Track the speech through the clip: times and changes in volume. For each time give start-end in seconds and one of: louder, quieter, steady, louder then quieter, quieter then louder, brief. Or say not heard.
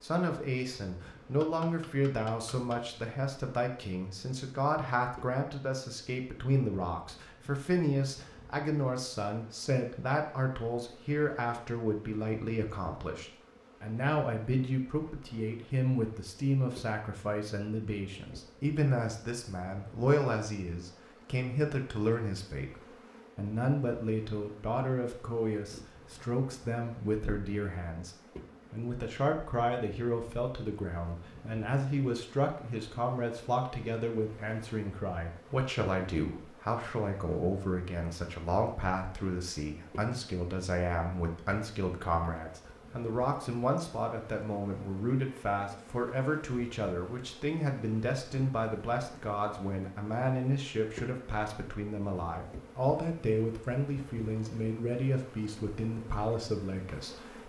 0.0-57.4 steady.